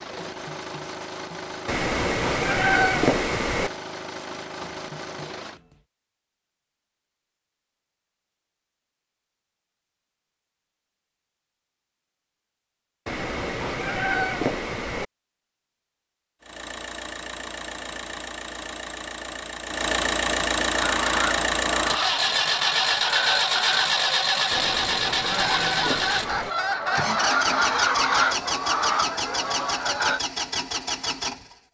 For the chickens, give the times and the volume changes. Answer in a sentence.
You can hear the chickens from 20.7 to 30.2 s, getting louder.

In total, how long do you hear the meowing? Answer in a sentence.
You can hear the meowing for 6 seconds altogether.